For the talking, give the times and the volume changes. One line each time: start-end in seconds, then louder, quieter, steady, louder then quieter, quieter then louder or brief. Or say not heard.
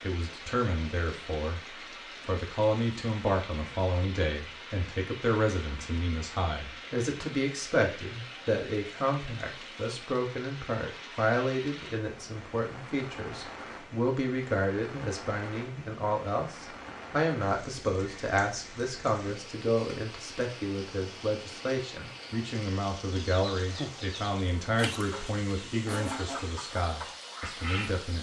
0.0-28.1 steady.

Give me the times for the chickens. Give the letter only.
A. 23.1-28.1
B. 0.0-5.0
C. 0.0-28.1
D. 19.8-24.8
A.